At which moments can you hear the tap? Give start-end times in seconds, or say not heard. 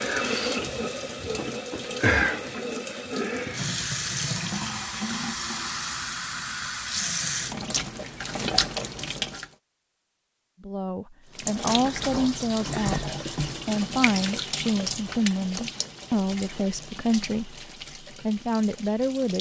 0.0-9.4, 11.3-19.3.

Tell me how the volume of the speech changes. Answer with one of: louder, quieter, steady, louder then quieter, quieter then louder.
steady.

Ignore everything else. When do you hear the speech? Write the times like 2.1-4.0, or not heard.
10.6-19.3.